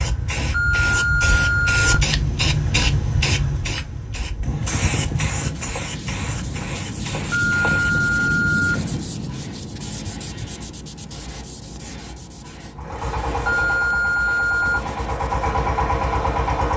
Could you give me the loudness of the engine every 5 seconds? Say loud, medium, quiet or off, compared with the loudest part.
off, off, medium, loud.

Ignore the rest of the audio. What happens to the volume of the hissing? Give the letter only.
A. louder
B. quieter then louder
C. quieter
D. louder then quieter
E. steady
C.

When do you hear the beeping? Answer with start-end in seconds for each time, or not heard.
0.5-2.0, 7.3-8.8, 13.4-14.8.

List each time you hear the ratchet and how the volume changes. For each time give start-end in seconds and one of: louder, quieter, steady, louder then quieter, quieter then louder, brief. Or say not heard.
not heard.